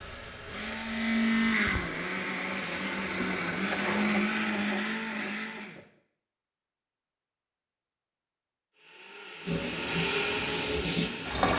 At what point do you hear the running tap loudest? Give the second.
11 s.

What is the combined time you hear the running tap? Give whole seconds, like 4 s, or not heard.
6 s.